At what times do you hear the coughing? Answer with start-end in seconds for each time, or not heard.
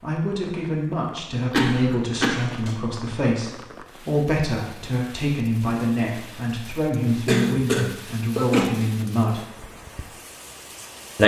1.5-3.0, 7.2-8.7.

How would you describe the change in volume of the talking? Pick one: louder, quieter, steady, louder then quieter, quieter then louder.
steady.